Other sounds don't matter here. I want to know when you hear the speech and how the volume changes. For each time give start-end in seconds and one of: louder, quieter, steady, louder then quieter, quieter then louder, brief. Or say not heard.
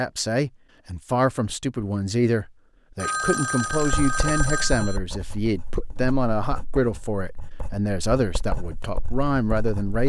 0.0-10.0 steady.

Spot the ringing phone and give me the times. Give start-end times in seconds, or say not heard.
3.0-5.0.